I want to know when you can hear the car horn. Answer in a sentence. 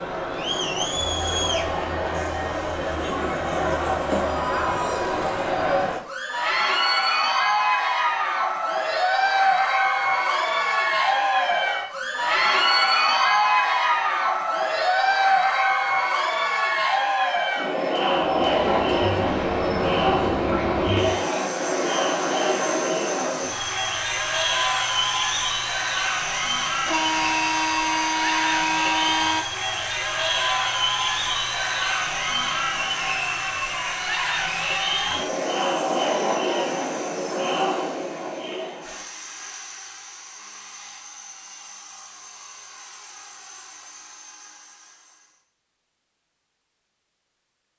The car horn can be heard from 26.8 to 29.4 s.